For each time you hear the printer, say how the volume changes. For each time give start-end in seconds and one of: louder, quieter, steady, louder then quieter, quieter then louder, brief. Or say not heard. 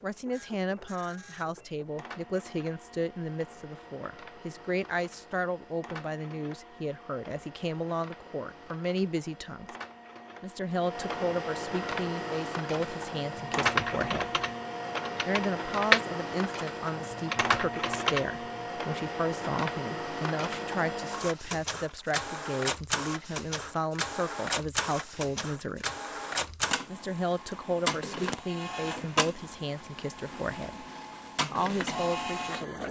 0.0-32.8 louder.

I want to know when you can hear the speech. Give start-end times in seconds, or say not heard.
0.0-9.8, 10.4-14.3, 15.2-25.9, 26.9-30.9, 31.5-32.8.